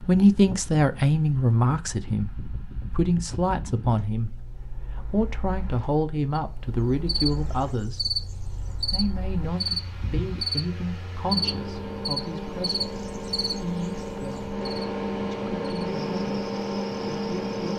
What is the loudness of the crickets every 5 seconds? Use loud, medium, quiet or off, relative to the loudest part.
off, loud, loud, quiet.